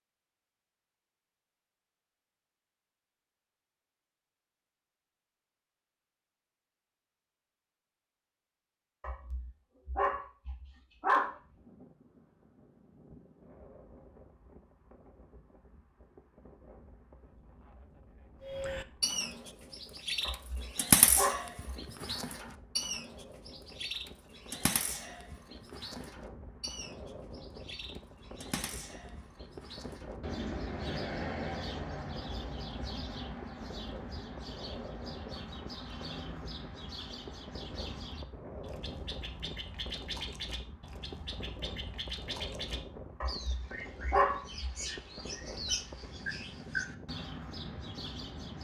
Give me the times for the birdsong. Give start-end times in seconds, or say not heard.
18.4-48.5.